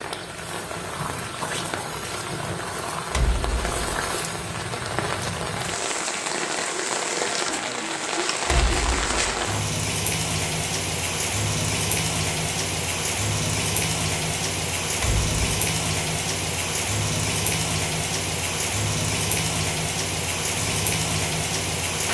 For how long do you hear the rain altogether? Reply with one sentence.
You can hear the rain for 22 seconds altogether.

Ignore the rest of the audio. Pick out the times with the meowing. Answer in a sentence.
You can't hear the meowing here.